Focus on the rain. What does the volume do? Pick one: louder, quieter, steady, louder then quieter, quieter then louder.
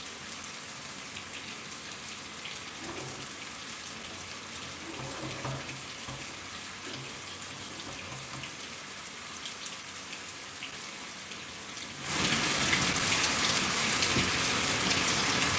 louder.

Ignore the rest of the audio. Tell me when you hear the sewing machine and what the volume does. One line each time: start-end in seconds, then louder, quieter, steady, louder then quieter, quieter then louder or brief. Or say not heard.
2.8-8.6 louder then quieter.